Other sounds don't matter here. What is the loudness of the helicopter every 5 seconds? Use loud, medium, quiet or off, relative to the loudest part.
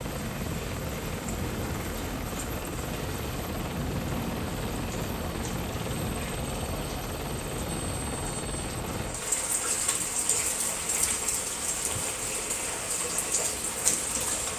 loud, loud, quiet.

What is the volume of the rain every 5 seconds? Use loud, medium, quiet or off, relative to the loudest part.
quiet, medium, loud.